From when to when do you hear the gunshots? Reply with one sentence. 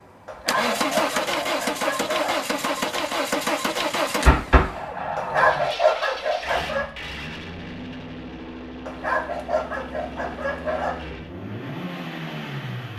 The gunshots can be heard from 4.2 to 5.7 s.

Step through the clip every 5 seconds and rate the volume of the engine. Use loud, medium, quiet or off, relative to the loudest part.
loud, medium, medium.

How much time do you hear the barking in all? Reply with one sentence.
The barking can be heard for 6 seconds in total.